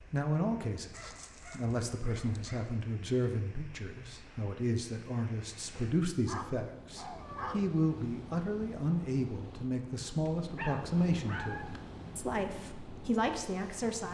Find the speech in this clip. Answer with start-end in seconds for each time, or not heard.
0.1-14.0.